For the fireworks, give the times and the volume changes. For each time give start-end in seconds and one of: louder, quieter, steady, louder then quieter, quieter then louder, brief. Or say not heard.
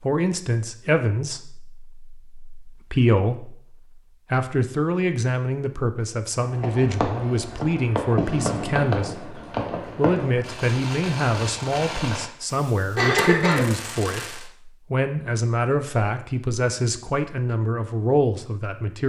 6.4-14.5 quieter.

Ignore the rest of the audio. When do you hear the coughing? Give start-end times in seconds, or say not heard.
12.9-14.2.